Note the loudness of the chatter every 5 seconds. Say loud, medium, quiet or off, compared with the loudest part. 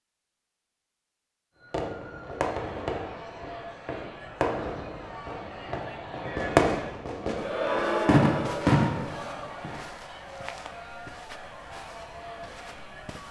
medium, loud, medium.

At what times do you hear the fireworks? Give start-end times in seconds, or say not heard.
1.7-9.8.